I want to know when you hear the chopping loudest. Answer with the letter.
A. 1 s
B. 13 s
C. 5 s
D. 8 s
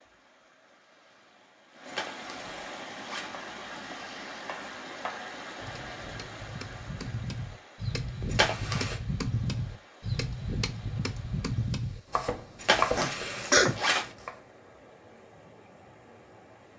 B.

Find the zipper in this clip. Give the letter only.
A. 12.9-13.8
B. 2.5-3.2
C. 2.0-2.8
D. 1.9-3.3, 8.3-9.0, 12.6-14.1
D.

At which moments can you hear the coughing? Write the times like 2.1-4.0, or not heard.
12.9-13.8.